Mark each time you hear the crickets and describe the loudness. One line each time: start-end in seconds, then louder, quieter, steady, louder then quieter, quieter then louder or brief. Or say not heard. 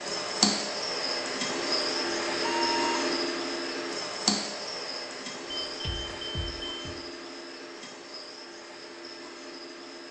0.0-10.0 quieter.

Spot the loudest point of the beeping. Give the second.
3 s.